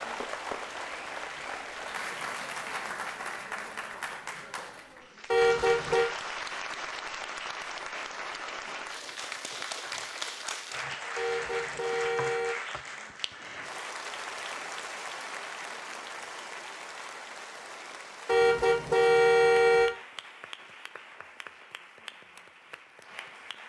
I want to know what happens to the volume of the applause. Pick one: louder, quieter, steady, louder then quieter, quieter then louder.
quieter.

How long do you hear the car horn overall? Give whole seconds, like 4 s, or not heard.
4 s.